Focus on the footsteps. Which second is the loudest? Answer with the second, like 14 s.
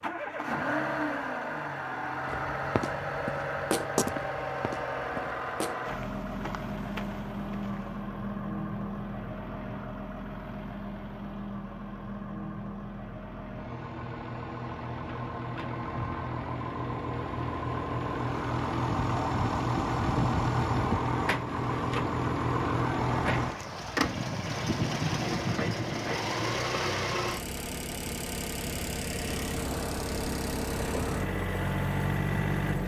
4 s.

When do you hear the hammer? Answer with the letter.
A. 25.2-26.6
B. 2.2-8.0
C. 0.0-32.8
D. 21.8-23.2
A.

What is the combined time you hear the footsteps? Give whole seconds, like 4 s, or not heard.
6 s.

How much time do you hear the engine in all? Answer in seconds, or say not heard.
33 s.